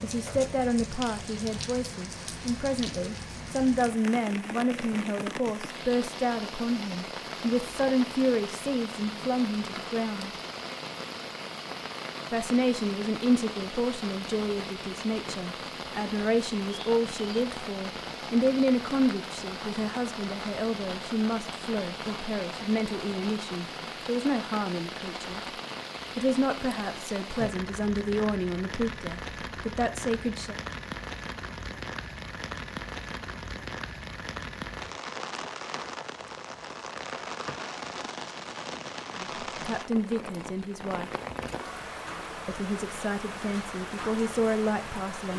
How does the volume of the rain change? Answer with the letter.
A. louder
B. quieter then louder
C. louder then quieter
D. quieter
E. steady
E.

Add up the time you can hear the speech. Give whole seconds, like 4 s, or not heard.
33 s.